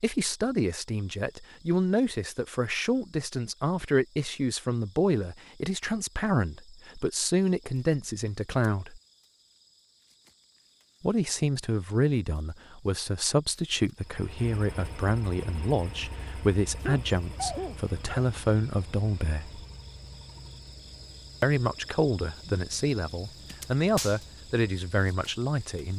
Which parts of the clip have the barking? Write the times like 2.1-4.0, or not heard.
16.8-18.2.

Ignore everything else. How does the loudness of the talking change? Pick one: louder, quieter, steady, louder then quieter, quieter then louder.
steady.